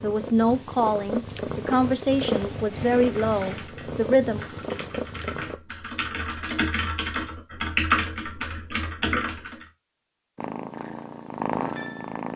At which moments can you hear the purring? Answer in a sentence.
You can hear the purring from 0.0 to 5.5 s and from 10.3 to 12.3 s.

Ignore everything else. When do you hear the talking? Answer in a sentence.
The talking can be heard from 0.0 to 4.5 s.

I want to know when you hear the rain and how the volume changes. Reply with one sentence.
The rain can't be heard in this clip.